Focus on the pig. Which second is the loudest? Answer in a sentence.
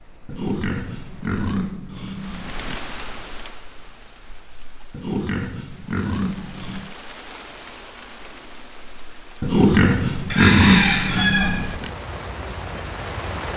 The volume of the pig peaks at 11 seconds.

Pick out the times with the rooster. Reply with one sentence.
The rooster can be heard from 10.3 to 11.8 s.